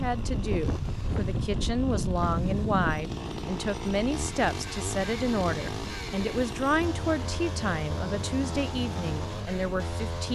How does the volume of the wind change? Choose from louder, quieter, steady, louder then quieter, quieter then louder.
quieter.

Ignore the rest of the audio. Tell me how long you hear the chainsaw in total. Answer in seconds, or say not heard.
10 s.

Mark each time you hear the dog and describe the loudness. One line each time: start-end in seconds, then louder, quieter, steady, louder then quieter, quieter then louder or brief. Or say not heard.
not heard.